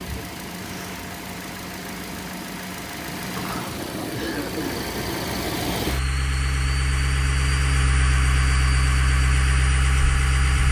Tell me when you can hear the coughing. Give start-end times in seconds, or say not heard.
4.1-4.8.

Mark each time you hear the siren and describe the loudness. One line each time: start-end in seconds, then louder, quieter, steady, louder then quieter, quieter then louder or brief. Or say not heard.
not heard.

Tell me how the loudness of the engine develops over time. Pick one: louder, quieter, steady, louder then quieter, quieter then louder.
louder.